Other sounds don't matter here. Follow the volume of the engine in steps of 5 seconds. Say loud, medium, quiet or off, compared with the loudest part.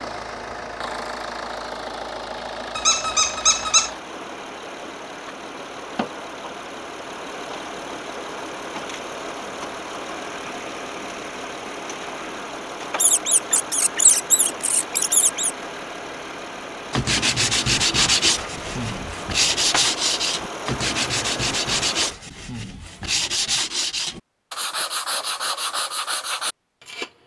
loud, loud, loud, loud, loud, off.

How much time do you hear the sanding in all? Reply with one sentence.
The sanding can be heard for 10 seconds in total.